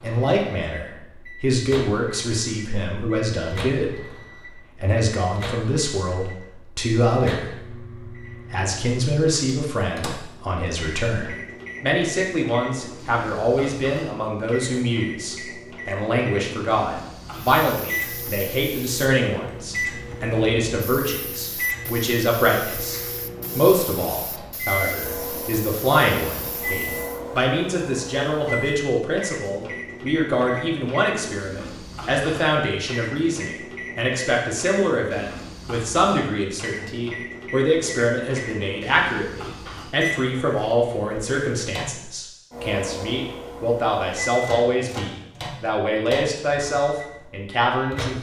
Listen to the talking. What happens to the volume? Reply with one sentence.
The volume of the talking stays about the same.